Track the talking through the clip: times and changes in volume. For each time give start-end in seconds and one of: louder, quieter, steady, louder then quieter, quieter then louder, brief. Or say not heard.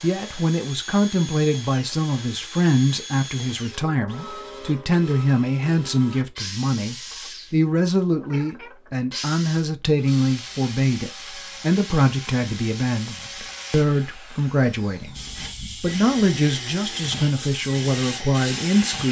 0.0-19.0 steady.